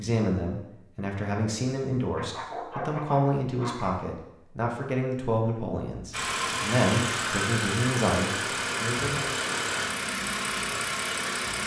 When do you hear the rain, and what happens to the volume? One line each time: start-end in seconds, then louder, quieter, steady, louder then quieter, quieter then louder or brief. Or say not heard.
not heard.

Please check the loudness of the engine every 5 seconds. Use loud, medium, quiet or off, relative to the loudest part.
off, loud, loud.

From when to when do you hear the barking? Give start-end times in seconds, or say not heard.
2.1-4.0.